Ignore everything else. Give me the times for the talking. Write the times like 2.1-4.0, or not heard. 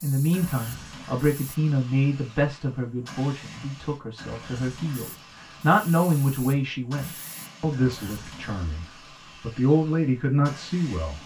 0.0-11.2.